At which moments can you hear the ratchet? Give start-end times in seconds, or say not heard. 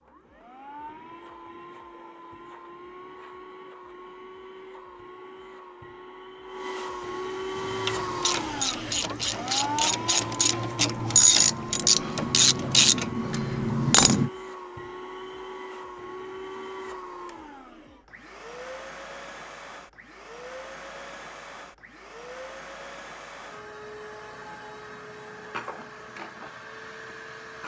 7.5-14.3.